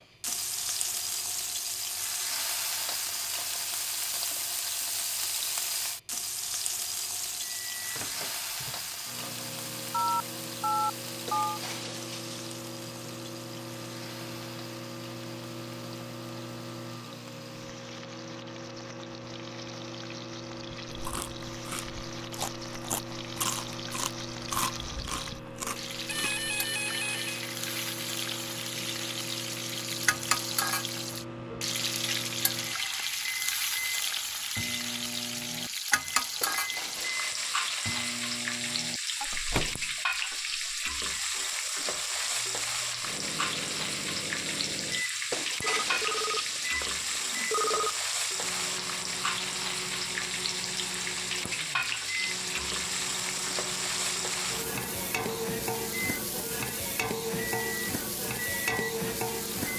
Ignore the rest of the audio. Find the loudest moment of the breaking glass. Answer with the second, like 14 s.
46 s.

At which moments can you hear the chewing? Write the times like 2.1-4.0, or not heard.
20.9-26.4.